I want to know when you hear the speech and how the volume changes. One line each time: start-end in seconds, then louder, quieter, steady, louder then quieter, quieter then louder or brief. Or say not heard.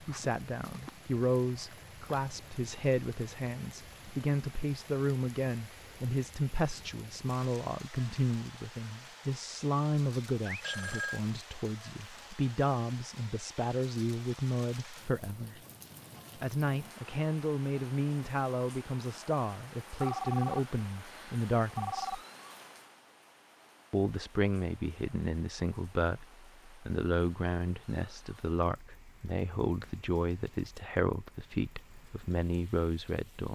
0.0-15.6 steady
16.4-22.2 steady
23.9-33.5 steady.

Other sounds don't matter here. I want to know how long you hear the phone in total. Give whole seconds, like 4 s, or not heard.
3 s.